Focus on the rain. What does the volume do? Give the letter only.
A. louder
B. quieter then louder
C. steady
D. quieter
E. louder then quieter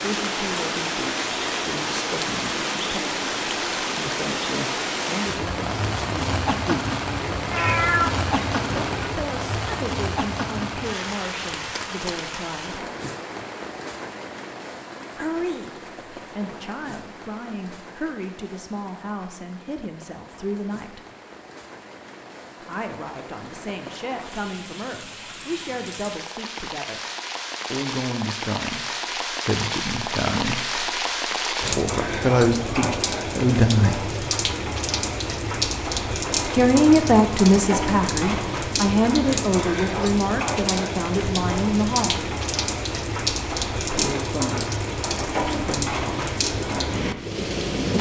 B.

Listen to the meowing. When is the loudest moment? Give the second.
8 s.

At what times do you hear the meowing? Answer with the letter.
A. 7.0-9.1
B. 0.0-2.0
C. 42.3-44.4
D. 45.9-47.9
A.